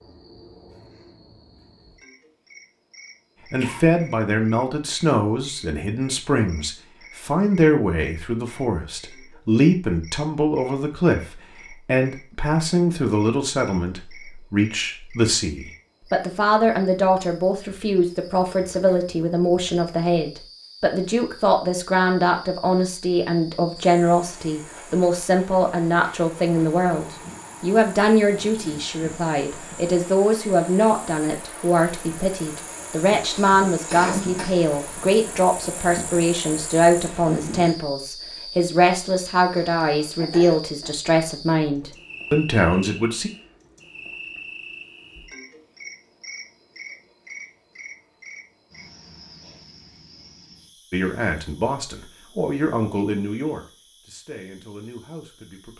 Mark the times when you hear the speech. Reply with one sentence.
The speech can be heard from 3.5 to 43.3 s and from 50.9 to 55.7 s.